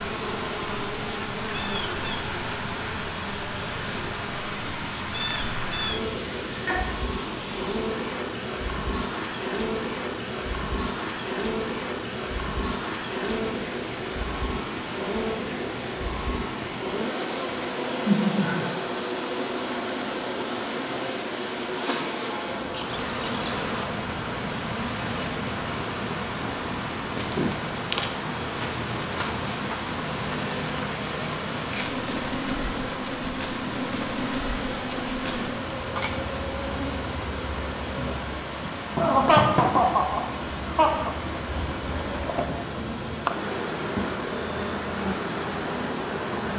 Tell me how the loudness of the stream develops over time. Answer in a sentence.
The loudness of the stream stays about the same.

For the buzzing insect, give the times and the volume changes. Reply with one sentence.
The buzzing insect can be heard from 0.0 to 46.5 s, at a steady volume.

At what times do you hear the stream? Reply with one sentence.
You can hear the stream from 0.0 to 46.5 s.